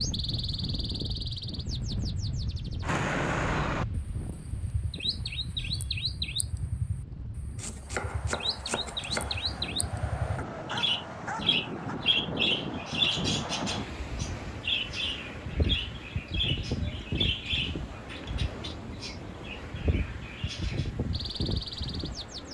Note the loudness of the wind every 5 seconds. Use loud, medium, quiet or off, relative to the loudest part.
loud, medium, loud, loud, loud.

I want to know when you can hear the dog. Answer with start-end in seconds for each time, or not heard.
10.3-12.0.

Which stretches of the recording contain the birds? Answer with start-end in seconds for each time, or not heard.
0.0-22.4.